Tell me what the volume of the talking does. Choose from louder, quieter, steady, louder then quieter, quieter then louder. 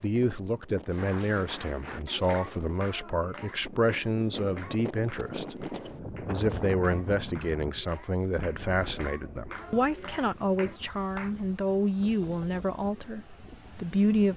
steady.